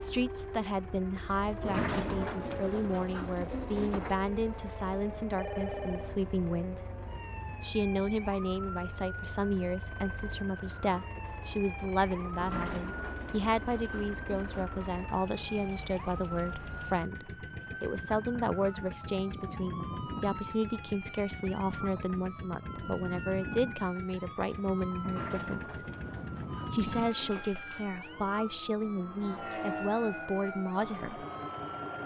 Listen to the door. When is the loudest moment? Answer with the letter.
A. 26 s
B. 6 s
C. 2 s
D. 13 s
C.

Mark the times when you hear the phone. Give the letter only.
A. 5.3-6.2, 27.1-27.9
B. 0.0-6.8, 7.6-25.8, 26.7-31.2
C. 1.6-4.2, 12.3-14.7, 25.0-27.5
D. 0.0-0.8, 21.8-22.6
A.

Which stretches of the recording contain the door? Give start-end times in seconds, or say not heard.
1.6-4.2, 12.3-14.7, 25.0-27.5.